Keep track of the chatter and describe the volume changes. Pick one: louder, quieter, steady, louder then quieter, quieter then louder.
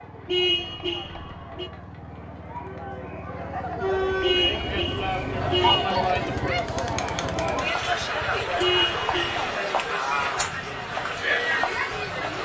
louder.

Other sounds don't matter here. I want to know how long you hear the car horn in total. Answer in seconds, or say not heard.
4 s.